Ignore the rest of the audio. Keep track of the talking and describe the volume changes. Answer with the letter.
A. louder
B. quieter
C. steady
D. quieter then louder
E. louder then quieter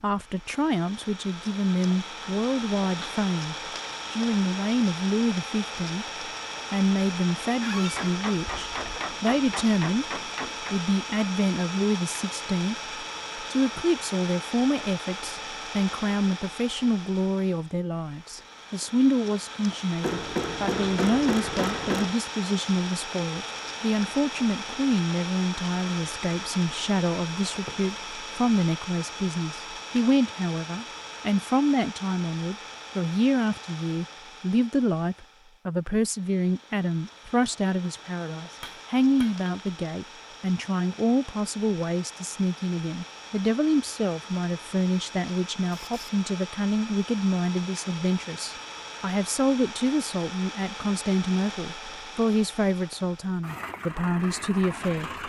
C.